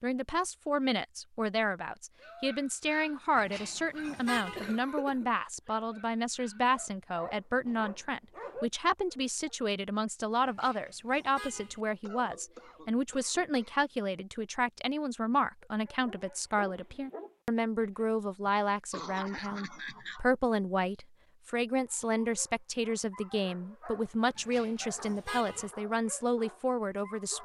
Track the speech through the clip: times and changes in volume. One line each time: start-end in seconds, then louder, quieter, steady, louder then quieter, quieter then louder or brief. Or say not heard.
0.0-27.3 steady.